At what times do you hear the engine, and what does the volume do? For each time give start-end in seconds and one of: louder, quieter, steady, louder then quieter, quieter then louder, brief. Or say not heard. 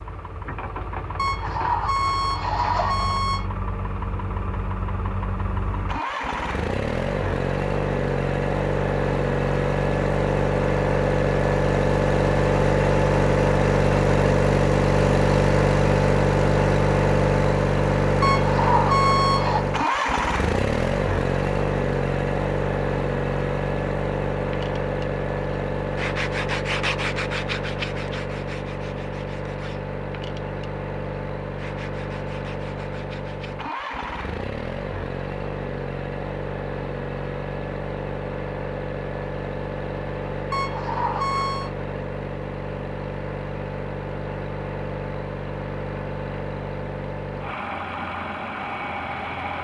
0.0-49.5 louder then quieter.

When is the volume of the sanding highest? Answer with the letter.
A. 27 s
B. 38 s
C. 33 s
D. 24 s
A.